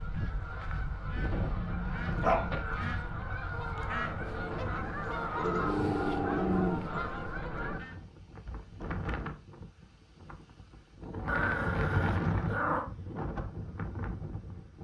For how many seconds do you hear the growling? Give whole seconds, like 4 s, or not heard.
5 s.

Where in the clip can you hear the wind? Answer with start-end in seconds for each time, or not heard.
0.0-14.7.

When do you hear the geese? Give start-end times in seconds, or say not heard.
0.0-8.0.